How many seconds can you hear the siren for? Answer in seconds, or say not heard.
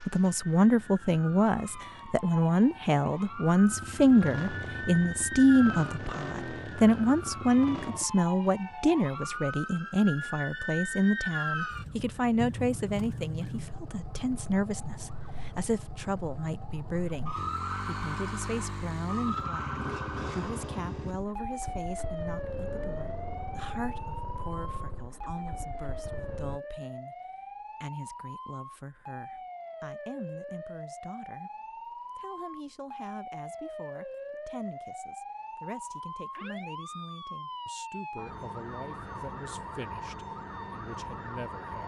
42 s.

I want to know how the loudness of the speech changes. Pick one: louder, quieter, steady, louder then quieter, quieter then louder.
quieter.